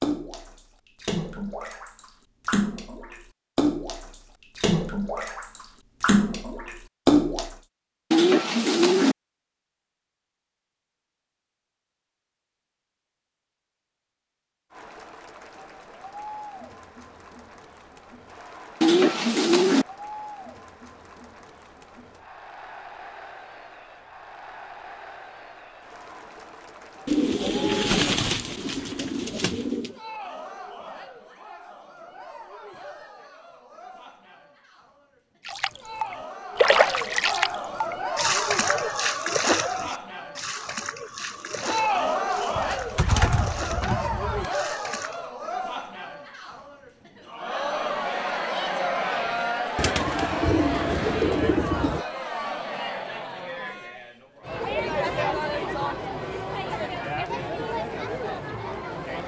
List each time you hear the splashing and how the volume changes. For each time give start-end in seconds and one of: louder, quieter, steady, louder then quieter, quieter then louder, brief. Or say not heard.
0.0-7.5 louder
35.5-45.2 quieter.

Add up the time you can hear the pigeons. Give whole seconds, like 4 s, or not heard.
9 s.